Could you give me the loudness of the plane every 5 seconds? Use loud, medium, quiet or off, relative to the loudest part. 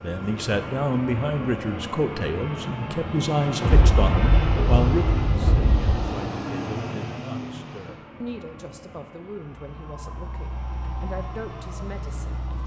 loud, loud, quiet.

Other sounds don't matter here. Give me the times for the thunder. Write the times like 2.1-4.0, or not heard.
3.6-6.0.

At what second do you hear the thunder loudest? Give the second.
4 s.